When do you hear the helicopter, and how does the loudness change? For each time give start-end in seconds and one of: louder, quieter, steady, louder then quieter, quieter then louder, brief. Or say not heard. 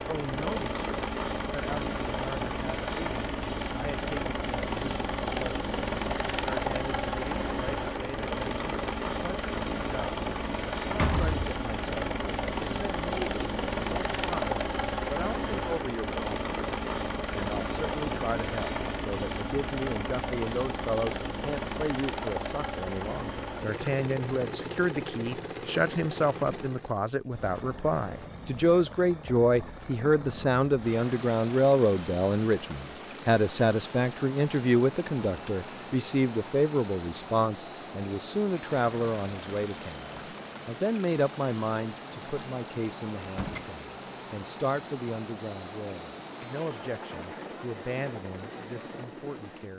0.0-49.7 quieter.